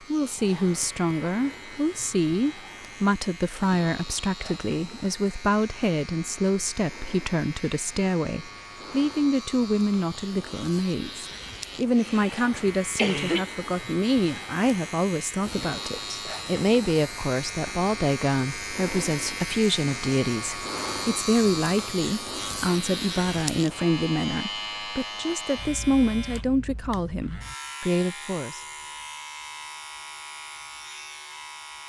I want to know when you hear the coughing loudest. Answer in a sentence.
The volume of the coughing peaks at 13 seconds.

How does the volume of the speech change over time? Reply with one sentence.
The volume of the speech stays about the same.